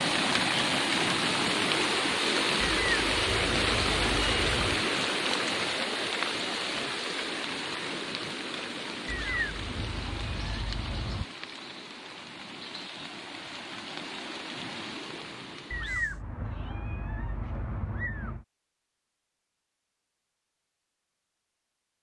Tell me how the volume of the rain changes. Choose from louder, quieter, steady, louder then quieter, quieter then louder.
quieter.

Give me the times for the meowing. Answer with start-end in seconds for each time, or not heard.
2.6-4.8, 9.1-11.2, 15.7-18.4.